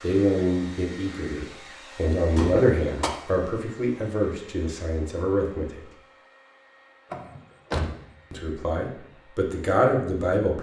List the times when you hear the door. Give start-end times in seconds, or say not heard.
2.4-3.1, 7.1-8.0.